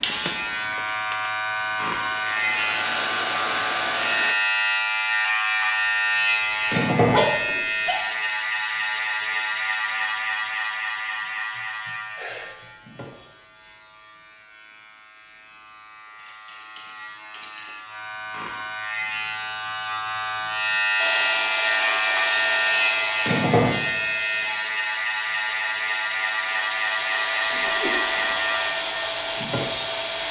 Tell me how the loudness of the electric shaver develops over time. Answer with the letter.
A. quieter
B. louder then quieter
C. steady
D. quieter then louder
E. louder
D.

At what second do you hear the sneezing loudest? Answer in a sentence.
The loudest moment of the sneezing is at 7 seconds.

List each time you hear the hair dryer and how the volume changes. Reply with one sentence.
You can hear the hair dryer from 0.0 to 4.3 s, getting louder; and from 20.9 to 30.2 s, getting quieter then louder.